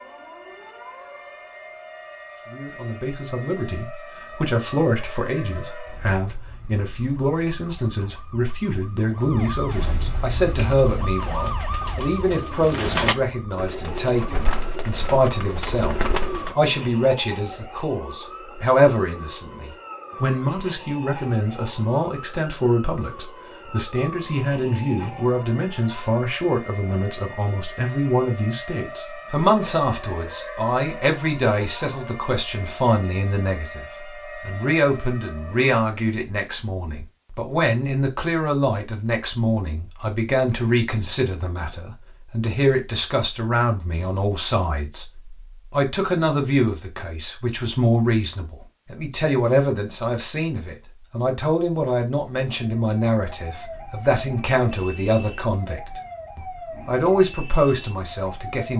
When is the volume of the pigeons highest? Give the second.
13 s.